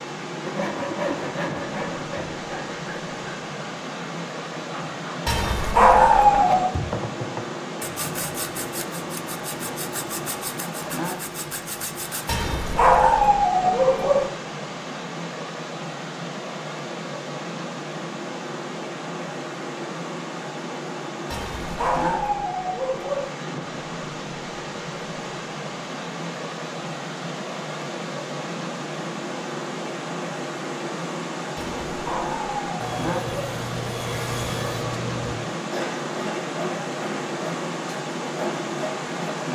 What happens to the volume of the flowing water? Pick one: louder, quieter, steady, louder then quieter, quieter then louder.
steady.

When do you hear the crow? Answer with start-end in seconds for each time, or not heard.
not heard.